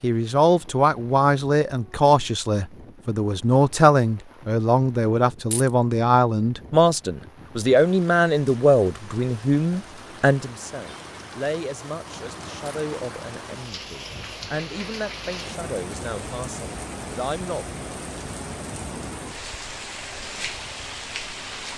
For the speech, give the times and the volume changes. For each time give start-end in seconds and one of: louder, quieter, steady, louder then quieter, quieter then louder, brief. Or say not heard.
0.0-17.6 quieter.